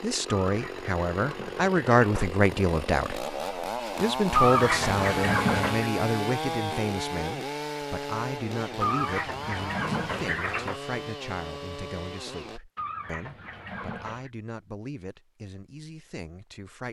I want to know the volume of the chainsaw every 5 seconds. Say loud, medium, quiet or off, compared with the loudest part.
loud, loud, medium, off.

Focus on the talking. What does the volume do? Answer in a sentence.
The volume of the talking goes down.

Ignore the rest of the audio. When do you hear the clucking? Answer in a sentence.
You can hear the clucking from 0.3 to 2.3 s, from 4.3 to 5.9 s, from 8.8 to 10.8 s and from 12.8 to 14.3 s.